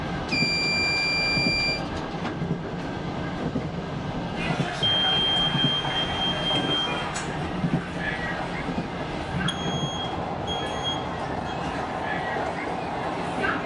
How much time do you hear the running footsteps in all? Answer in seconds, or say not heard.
not heard.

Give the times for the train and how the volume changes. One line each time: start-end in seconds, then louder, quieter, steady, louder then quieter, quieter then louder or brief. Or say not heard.
0.0-13.6 steady.